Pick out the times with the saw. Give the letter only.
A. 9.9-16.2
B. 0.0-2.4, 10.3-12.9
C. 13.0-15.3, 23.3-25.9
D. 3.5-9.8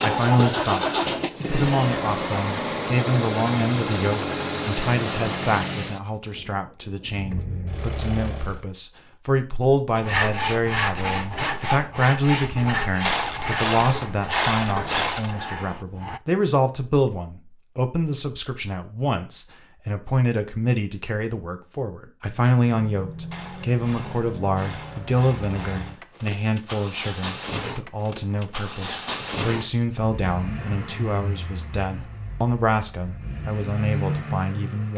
A.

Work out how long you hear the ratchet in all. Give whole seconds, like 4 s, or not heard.
5 s.